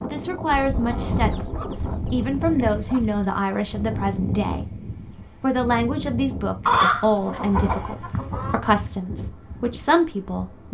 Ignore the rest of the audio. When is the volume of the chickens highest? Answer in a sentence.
The volume of the chickens peaks at 7 seconds.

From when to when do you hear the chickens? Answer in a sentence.
You can hear the chickens from 0.6 to 3.3 s and from 6.7 to 8.6 s.